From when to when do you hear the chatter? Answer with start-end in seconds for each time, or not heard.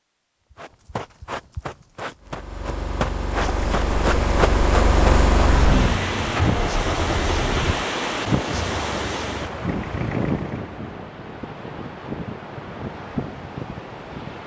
not heard.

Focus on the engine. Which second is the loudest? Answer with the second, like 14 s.
5 s.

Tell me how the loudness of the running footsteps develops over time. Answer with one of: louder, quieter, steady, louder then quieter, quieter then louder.
louder.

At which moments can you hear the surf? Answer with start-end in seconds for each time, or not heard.
3.4-14.4.